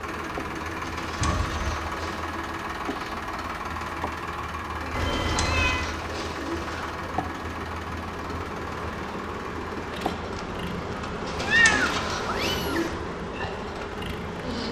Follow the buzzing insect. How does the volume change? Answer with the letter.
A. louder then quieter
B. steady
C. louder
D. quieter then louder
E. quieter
C.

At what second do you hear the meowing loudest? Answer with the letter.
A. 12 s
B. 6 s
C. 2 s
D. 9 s
A.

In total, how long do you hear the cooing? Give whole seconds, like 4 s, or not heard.
5 s.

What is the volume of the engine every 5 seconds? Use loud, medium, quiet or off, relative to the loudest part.
loud, loud, medium.